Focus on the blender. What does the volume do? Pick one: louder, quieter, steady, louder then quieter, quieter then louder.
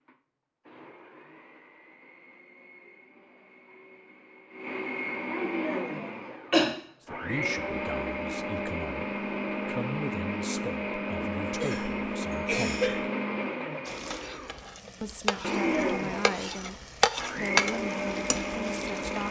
louder.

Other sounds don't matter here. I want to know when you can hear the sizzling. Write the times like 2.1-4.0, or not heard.
13.8-19.2.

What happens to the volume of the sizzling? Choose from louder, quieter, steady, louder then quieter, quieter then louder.
louder then quieter.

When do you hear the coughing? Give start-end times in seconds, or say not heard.
5.7-6.7, 11.4-13.1.